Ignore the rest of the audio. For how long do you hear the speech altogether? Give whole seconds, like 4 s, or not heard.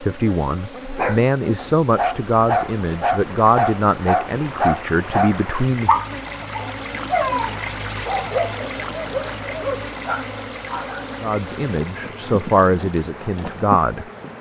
9 s.